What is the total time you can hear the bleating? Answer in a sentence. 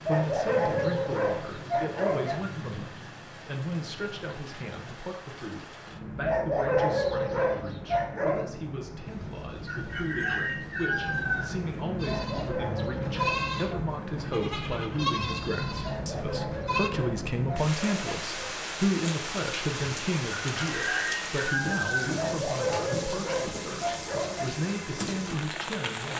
You can hear the bleating for 5 seconds altogether.